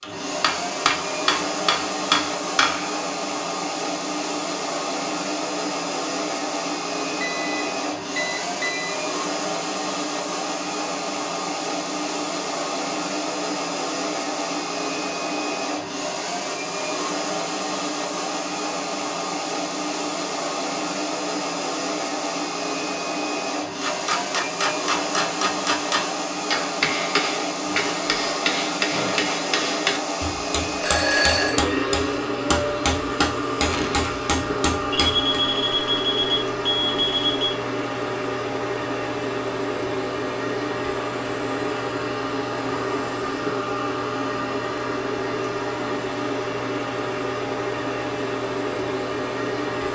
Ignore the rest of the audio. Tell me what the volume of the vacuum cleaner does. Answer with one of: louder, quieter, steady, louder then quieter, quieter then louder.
steady.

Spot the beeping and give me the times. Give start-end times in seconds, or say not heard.
7.2-8.9, 30.8-31.6, 34.9-37.5.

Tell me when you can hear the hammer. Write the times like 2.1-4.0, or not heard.
0.0-3.0, 23.8-35.2.